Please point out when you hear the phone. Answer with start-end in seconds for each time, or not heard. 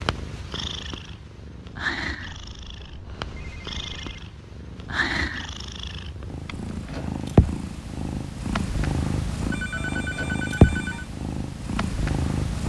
2.2-4.2, 9.5-11.1.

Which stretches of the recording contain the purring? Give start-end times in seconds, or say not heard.
0.0-12.6.